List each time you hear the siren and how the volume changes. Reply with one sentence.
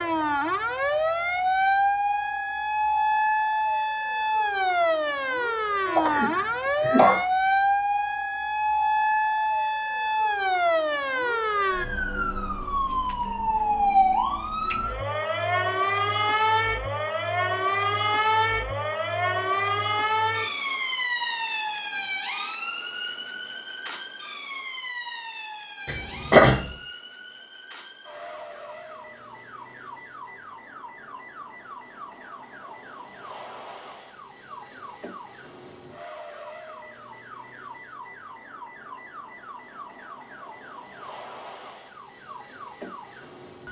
You can hear the siren from 0.0 to 43.6 s, getting quieter.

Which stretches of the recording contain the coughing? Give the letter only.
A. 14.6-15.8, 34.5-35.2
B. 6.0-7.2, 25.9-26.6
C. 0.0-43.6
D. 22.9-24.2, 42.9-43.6
B.